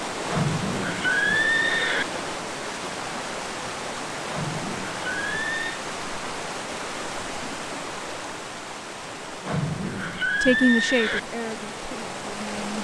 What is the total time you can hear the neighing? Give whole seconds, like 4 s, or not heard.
5 s.